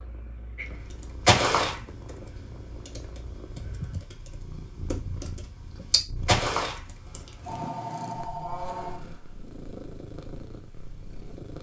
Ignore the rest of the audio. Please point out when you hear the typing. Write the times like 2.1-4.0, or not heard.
0.6-7.7.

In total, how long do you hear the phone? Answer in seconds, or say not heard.
3 s.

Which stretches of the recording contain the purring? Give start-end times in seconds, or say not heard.
0.0-11.5.